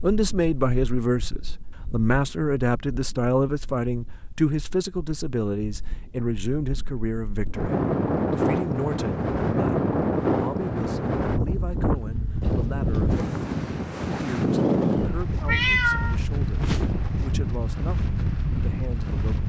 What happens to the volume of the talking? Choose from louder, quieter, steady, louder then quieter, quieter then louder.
quieter.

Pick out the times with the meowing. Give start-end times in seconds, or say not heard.
15.4-16.9.